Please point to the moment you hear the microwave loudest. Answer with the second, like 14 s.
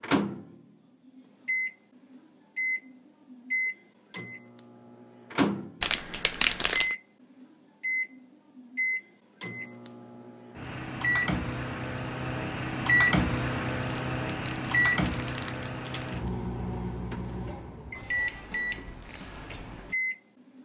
13 s.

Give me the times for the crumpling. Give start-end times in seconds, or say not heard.
5.8-7.0, 13.8-16.3.